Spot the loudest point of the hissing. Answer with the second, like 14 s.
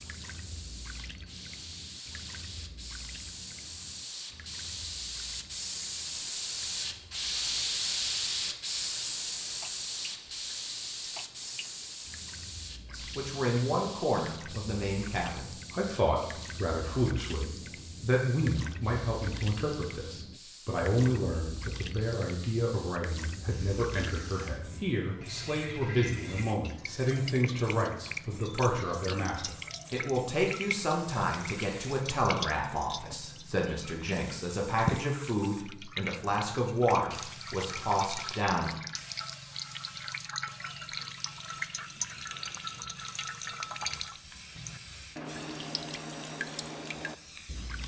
8 s.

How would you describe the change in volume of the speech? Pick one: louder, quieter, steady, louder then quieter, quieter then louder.
steady.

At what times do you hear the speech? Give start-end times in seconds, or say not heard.
12.9-38.7.